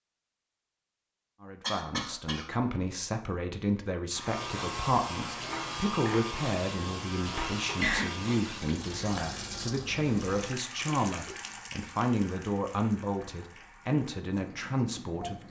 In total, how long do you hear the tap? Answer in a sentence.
You can hear the tap for 11 seconds altogether.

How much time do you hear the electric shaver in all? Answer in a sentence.
The electric shaver can be heard for 4 seconds in total.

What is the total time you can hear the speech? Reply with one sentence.
The speech can be heard for 14 seconds in total.